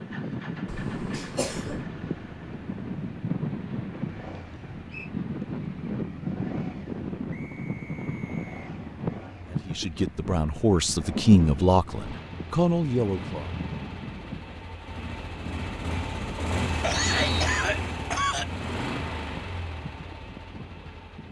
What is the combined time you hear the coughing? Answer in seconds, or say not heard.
3 s.